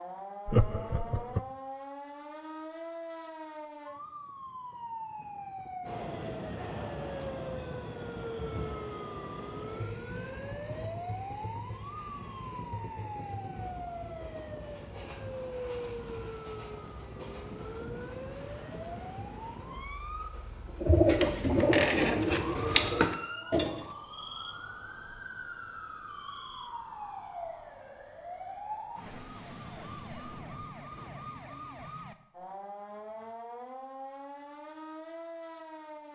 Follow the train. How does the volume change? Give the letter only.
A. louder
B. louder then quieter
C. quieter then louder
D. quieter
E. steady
D.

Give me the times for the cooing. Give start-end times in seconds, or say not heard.
20.8-23.9.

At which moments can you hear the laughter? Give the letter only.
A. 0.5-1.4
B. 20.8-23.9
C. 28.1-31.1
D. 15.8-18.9
A.